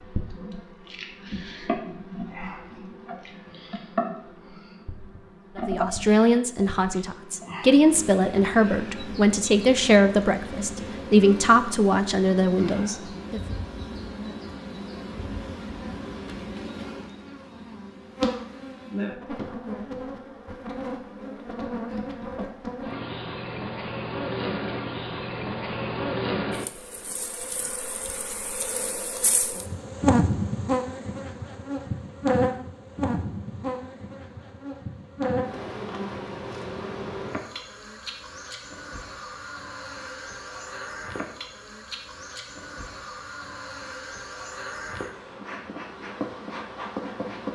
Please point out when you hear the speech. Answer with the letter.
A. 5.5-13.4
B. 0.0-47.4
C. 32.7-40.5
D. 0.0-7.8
A.